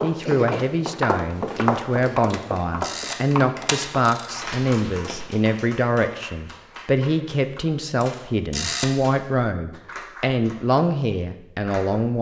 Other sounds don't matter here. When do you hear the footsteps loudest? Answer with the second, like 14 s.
2 s.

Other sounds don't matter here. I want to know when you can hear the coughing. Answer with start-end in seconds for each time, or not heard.
0.2-0.7.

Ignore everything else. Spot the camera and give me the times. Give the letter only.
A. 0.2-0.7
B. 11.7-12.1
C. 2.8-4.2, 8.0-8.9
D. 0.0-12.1
C.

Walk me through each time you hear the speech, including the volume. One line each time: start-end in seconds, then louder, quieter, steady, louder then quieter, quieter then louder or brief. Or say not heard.
0.0-12.1 steady.